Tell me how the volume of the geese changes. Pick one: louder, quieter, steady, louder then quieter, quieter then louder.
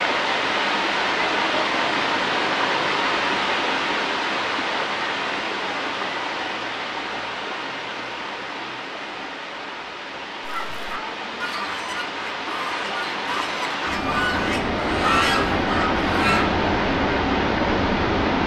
louder.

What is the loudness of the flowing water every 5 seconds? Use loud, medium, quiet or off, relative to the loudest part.
loud, medium, medium, loud.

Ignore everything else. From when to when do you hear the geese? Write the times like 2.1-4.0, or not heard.
10.4-16.4.